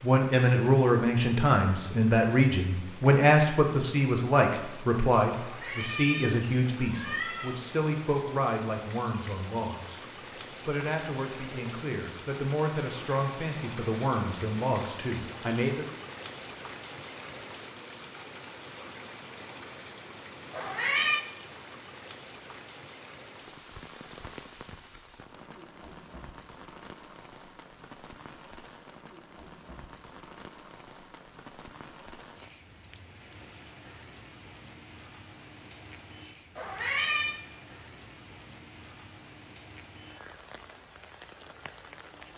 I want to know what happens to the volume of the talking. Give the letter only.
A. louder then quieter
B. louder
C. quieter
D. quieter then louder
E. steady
C.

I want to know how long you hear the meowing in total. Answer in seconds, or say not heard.
4 s.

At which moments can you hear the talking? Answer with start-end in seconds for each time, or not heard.
0.0-10.0, 10.7-15.8.